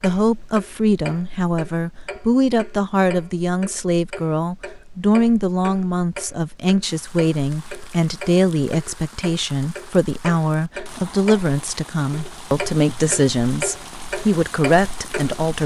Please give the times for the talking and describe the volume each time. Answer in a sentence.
You can hear the talking from 0.0 to 15.6 s, at a steady volume.